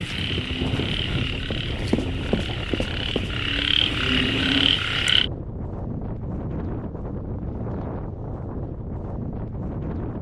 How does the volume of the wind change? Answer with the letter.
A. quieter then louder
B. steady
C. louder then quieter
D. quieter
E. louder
B.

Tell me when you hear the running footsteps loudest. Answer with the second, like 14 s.
2 s.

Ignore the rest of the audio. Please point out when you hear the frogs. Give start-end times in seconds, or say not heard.
0.0-5.3.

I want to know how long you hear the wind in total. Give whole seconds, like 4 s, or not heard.
10 s.